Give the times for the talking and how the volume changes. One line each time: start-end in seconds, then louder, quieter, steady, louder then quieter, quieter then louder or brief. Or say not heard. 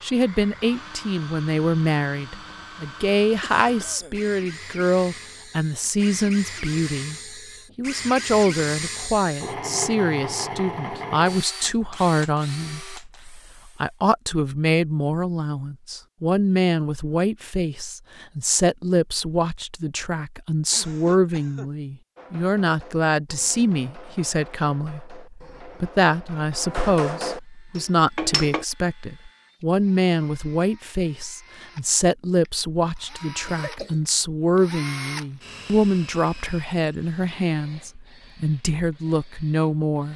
0.0-7.2 steady
7.8-40.1 steady.